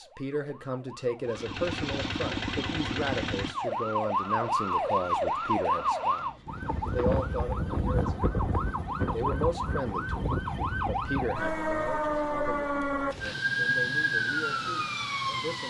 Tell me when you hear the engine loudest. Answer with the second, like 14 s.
3 s.